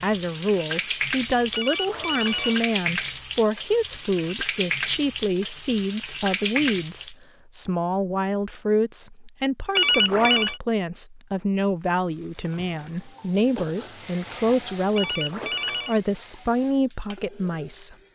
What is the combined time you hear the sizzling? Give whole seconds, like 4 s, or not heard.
13 s.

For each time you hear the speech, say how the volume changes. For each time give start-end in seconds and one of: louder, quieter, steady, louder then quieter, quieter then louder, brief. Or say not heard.
0.0-17.9 steady.